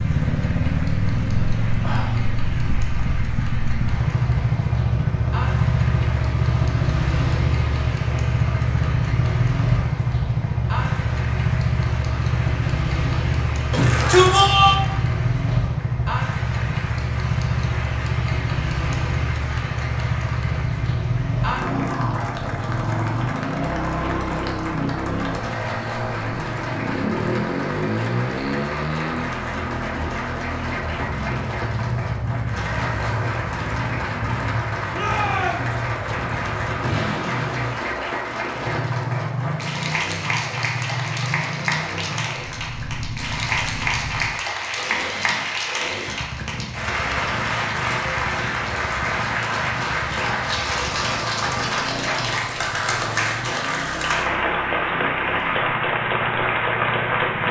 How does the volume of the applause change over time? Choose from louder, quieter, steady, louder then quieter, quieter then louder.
louder.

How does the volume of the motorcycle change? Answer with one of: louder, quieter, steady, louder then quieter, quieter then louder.
quieter.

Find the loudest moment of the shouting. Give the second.
14 s.